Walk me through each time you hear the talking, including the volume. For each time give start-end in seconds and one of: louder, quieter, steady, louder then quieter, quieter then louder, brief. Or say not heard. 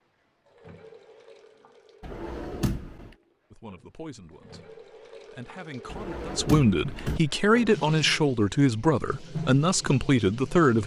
3.5-10.8 louder.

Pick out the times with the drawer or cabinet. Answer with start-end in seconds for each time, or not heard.
2.0-3.1, 5.8-7.2.